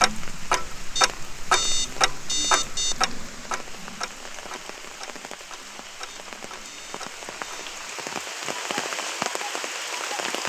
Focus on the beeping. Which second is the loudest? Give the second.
2 s.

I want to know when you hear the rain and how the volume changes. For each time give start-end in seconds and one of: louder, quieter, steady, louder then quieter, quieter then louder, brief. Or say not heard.
0.0-10.4 louder.